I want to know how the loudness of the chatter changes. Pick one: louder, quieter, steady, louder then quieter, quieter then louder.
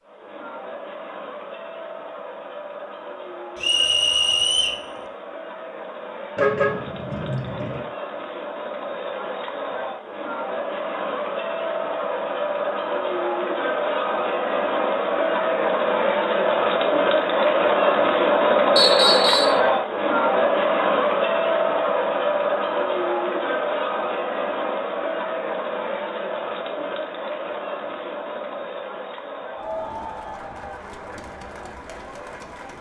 louder then quieter.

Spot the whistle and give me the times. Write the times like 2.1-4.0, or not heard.
3.6-4.8, 18.8-19.6.